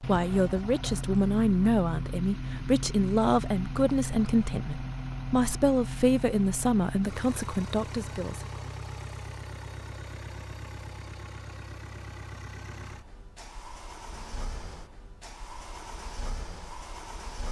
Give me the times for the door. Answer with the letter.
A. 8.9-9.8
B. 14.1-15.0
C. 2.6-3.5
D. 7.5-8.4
B.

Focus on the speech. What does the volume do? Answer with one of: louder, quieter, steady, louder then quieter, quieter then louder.
steady.